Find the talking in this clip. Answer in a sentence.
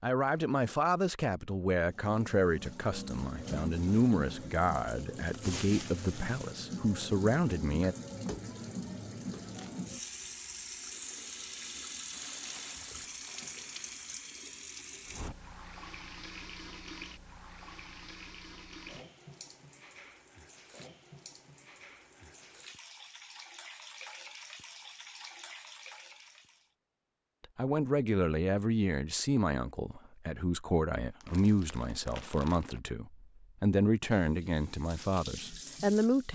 The talking can be heard from 0.0 to 8.0 s and from 27.6 to 36.2 s.